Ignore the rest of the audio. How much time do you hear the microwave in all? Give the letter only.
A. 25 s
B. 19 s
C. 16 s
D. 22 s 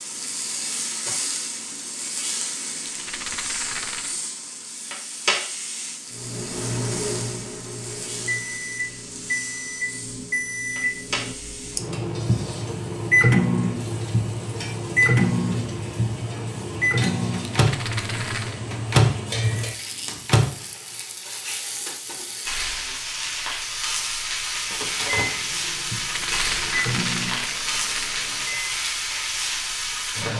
B.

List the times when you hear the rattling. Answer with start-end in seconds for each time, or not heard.
2.8-4.2, 17.4-18.6, 26.0-28.2.